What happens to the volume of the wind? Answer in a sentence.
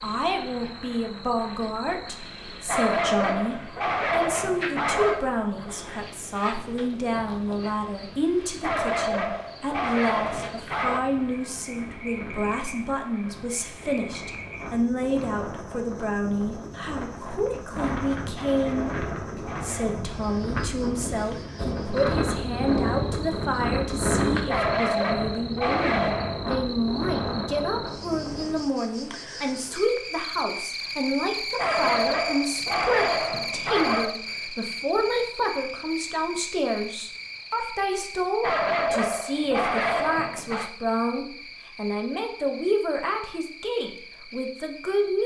The volume of the wind goes up.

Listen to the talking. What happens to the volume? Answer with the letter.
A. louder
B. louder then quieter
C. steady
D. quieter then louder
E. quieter
C.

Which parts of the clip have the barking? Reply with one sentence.
The barking can be heard from 2.6 to 5.2 s, from 8.6 to 11.1 s, from 18.4 to 20.1 s, from 24.4 to 26.4 s, from 31.6 to 34.2 s and from 38.4 to 40.7 s.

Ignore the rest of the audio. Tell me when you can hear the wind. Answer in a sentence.
You can hear the wind from 0.0 to 28.6 s.